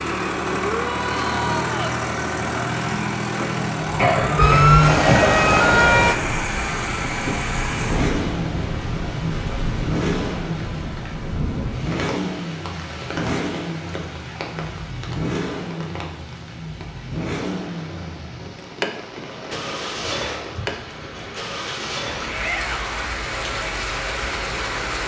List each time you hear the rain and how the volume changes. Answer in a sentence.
You can hear the rain from 6.1 to 25.0 s, getting quieter then louder.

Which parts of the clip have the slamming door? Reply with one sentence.
The slamming door can't be heard in this clip.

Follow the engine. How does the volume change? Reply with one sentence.
The loudness of the engine goes down.